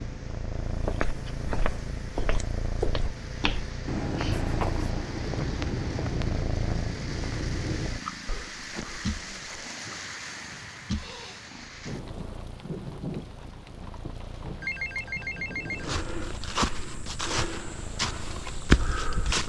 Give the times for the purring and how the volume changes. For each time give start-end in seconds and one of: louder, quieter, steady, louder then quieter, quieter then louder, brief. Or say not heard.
0.0-19.4 quieter.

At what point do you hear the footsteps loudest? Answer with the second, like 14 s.
19 s.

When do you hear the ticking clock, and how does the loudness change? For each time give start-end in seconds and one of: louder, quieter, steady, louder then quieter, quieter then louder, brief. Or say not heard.
not heard.